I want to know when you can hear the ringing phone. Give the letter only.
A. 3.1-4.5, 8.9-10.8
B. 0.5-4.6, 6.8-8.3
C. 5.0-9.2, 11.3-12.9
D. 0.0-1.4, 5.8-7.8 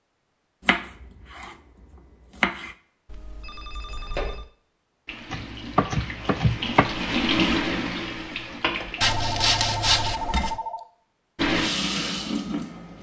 A.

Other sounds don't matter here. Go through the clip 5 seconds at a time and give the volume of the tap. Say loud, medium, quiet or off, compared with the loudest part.
off, loud, loud.